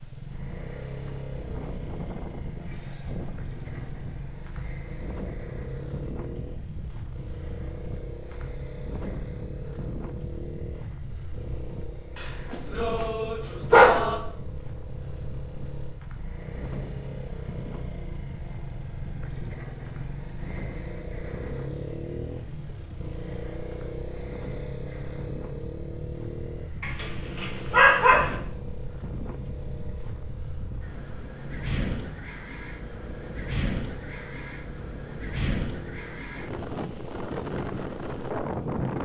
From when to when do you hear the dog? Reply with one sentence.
You can hear the dog from 12.2 to 14.2 s and from 26.8 to 28.4 s.